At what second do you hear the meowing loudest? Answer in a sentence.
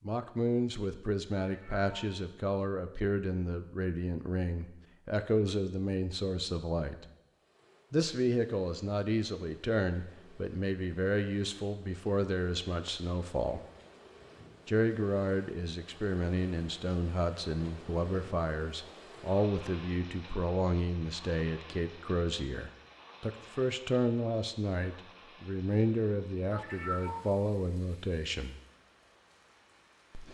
The loudest moment of the meowing is at 27 seconds.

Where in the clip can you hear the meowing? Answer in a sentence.
You can hear the meowing from 1.4 to 2.1 s and from 26.5 to 27.3 s.